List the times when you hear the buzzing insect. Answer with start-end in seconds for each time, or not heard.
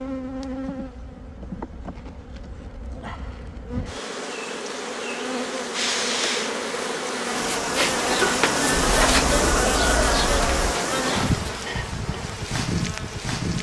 0.0-13.5.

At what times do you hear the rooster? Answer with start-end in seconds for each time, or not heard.
8.7-10.8.